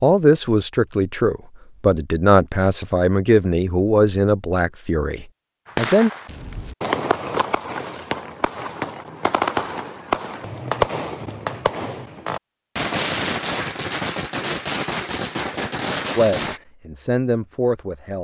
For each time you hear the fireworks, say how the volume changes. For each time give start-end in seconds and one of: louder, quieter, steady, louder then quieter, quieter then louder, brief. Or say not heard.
5.7-16.6 steady.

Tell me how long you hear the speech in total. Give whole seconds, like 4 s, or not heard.
8 s.